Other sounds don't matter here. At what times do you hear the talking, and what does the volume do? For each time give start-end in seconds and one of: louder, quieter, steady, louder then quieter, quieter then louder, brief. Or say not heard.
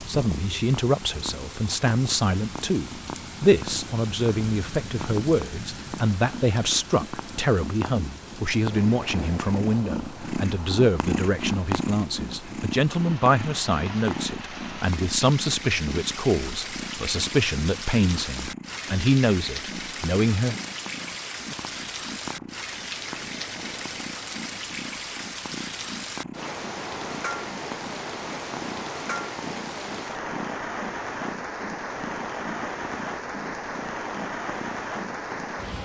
0.1-20.6 steady.